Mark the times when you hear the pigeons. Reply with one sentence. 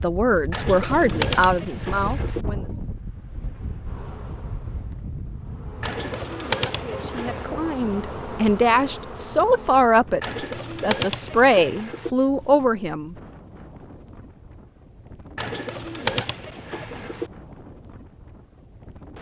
The pigeons can be heard from 0.5 to 2.5 s, from 5.8 to 7.5 s, from 10.2 to 12.1 s and from 15.3 to 17.3 s.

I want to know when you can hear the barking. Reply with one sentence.
The barking can't be heard in this clip.